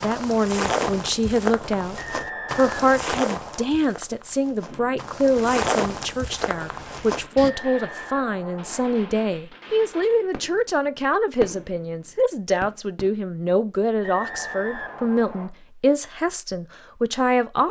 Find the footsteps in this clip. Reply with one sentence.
You can hear the footsteps from 0.0 to 7.5 s.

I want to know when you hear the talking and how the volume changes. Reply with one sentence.
The talking can be heard from 0.0 to 17.6 s, at a steady volume.